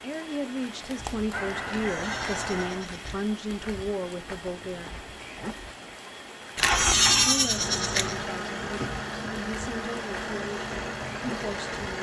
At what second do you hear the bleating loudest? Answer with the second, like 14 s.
7 s.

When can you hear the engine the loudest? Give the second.
7 s.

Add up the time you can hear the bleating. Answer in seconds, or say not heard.
3 s.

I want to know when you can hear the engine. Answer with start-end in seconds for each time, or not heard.
6.6-11.9.